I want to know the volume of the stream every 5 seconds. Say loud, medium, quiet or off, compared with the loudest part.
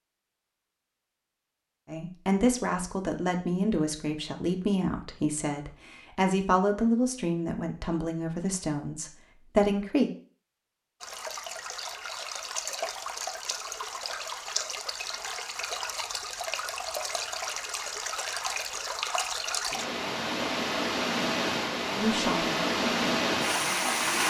off, off, medium, medium, loud.